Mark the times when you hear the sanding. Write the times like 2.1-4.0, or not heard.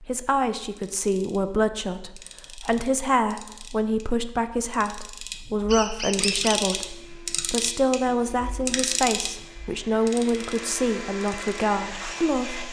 not heard.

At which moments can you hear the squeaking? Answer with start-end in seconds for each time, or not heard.
5.7-6.8.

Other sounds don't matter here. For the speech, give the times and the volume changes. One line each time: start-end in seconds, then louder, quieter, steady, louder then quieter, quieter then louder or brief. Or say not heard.
0.0-12.6 steady.